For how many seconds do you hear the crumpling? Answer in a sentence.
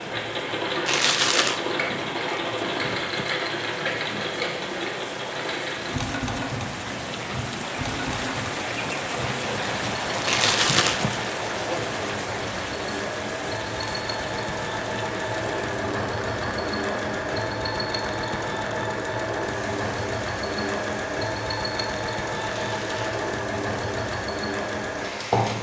You can hear the crumpling for 2 seconds altogether.